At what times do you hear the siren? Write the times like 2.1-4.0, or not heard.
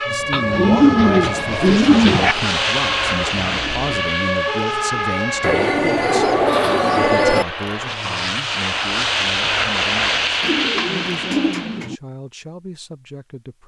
0.0-5.5.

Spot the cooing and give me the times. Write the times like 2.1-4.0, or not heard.
0.3-2.4, 5.4-7.5, 10.4-12.0.